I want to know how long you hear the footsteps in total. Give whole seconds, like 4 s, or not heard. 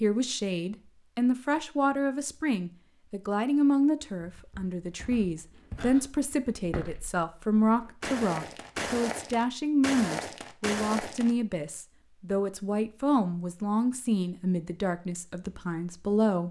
7 s.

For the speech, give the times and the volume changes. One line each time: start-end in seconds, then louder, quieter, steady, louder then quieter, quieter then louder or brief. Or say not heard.
0.0-16.4 steady.